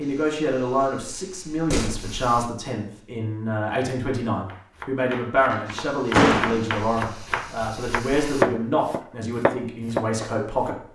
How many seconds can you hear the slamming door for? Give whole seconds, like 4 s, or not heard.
2 s.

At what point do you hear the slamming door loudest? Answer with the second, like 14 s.
6 s.